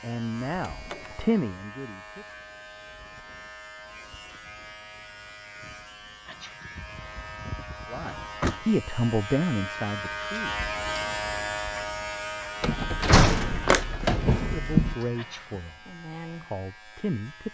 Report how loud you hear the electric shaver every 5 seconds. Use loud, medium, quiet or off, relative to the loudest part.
medium, medium, loud, medium.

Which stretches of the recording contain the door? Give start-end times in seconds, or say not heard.
0.7-1.1, 6.8-8.6, 12.6-14.9.